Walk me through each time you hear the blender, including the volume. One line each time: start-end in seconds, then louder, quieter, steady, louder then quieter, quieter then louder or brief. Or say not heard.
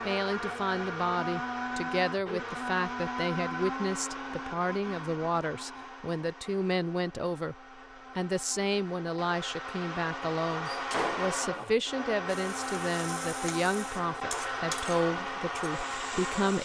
0.0-16.5 quieter then louder.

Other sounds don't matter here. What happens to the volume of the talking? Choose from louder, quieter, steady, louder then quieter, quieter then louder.
steady.